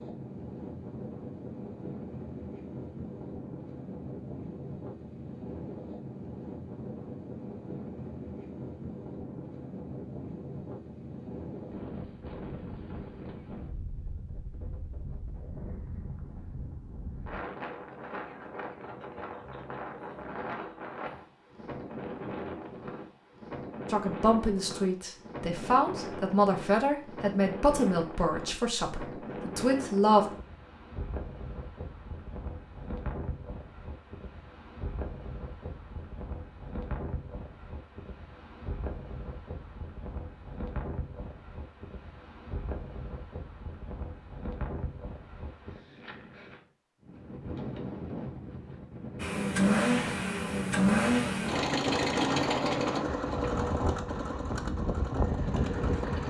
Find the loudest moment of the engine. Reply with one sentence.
The volume of the engine peaks at 51 seconds.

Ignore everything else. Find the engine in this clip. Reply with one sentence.
The engine can be heard from 49.2 to 56.2 s.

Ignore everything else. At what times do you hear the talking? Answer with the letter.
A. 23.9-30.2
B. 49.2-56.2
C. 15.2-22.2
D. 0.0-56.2
A.